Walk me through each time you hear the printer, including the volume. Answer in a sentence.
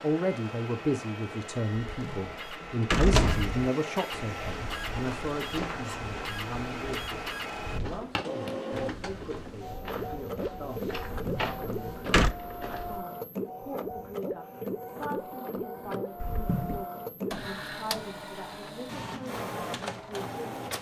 The printer can be heard from 0.0 to 20.7 s, at a steady volume.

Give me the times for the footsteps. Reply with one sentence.
You can hear the footsteps from 4.3 to 13.0 s.